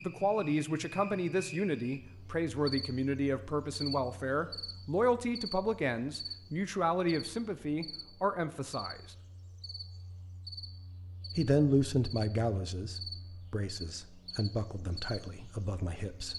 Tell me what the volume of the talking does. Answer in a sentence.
The loudness of the talking goes down.